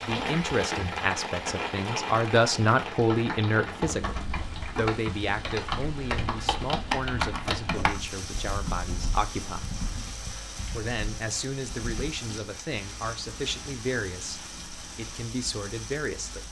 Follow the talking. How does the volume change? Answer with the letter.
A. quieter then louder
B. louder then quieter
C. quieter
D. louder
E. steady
C.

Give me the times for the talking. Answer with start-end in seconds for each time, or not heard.
0.0-4.2, 4.8-9.7, 10.7-16.4.